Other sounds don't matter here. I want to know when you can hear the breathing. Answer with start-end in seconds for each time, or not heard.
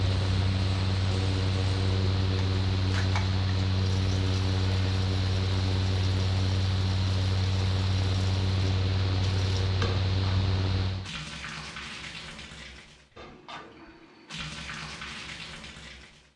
not heard.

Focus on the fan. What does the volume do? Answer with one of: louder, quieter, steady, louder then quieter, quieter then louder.
steady.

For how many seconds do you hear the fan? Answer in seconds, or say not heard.
11 s.